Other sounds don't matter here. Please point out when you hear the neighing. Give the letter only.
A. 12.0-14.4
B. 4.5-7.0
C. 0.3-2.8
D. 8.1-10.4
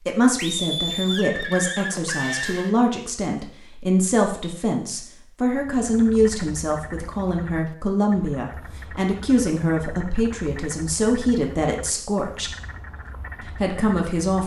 C.